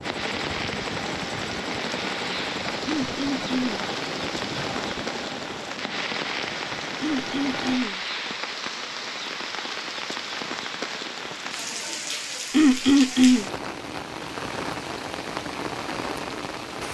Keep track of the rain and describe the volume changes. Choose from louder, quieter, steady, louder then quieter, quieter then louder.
steady.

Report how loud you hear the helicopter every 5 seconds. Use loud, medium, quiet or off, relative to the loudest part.
loud, loud, off, off.